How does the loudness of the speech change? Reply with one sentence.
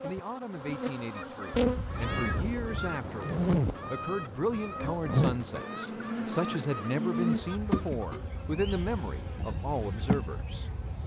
The volume of the speech goes up.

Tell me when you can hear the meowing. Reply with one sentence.
You can hear the meowing from 1.5 to 3.0 s.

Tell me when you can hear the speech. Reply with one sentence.
You can hear the speech from 0.0 to 10.7 s.